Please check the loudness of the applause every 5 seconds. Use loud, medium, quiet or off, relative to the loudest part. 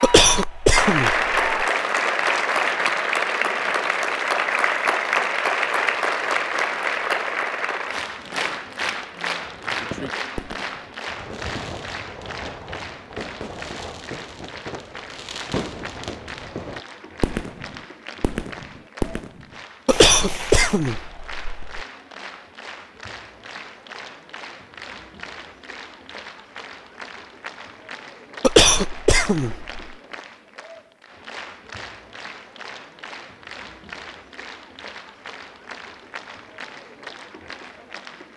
loud, loud, quiet, quiet, quiet, quiet, quiet, quiet.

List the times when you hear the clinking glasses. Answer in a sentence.
You can't hear the clinking glasses here.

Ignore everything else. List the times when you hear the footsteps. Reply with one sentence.
The footsteps can't be heard in this clip.